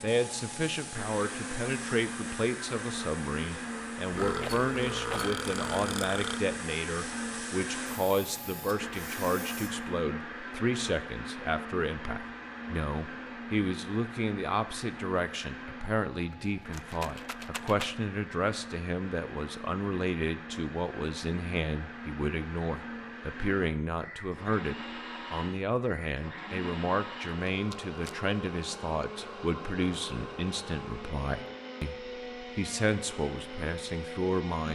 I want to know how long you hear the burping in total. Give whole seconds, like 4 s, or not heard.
2 s.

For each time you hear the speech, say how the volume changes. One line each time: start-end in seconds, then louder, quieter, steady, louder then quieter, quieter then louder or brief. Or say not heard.
0.0-34.7 steady.